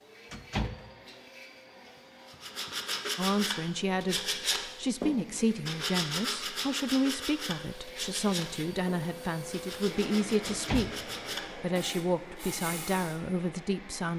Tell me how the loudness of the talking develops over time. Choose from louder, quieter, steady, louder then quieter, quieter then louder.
steady.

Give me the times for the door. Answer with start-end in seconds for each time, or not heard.
0.3-0.9, 10.4-11.1.